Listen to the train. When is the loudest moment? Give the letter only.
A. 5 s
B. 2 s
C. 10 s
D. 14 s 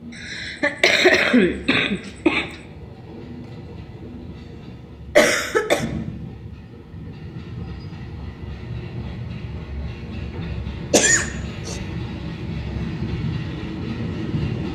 D.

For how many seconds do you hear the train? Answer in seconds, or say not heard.
15 s.